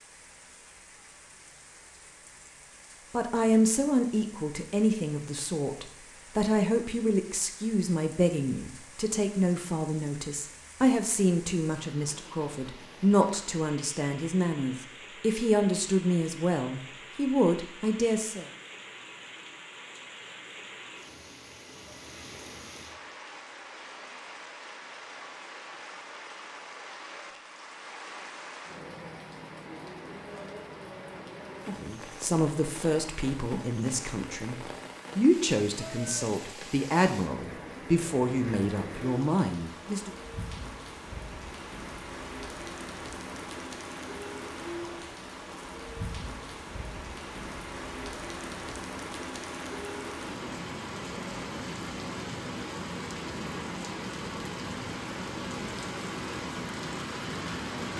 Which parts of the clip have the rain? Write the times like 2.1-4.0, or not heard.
0.0-57.9.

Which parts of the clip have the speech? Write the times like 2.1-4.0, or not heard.
3.1-18.4, 31.8-40.1.